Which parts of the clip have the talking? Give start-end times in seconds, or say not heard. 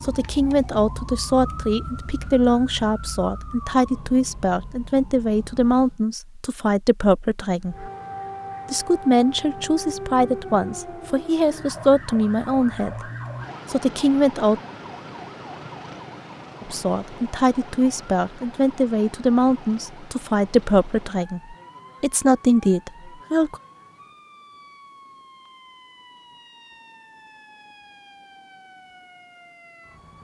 0.0-7.9, 8.7-13.1, 13.7-14.6, 16.6-23.6.